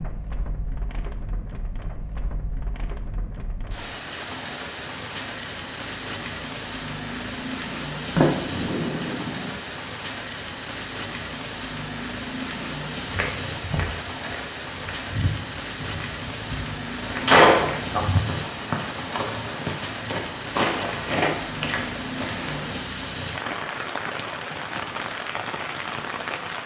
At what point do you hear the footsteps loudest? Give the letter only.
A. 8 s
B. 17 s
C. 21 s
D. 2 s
C.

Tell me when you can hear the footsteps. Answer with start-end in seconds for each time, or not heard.
13.0-22.9.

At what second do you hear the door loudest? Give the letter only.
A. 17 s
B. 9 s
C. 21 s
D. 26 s
A.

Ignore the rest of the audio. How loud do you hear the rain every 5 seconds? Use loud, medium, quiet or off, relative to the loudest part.
medium, loud, loud, loud, loud, loud.